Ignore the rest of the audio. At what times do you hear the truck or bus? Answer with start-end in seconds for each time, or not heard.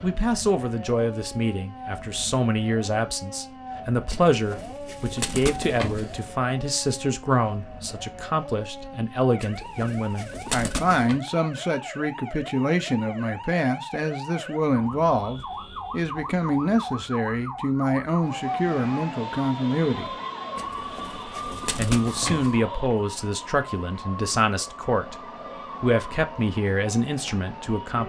not heard.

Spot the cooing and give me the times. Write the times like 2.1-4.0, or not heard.
4.1-6.3, 9.4-11.2, 20.6-22.6.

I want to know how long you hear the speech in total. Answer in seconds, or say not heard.
26 s.